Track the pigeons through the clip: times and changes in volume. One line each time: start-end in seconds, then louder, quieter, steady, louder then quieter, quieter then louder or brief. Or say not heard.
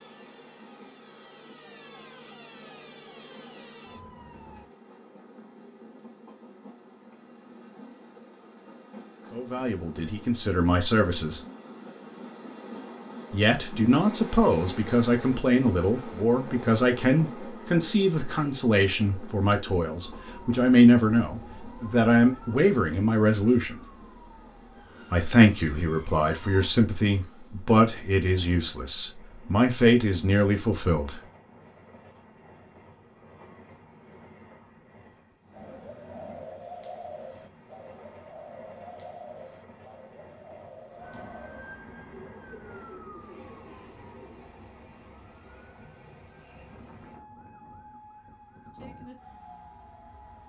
35.5-44.5 quieter.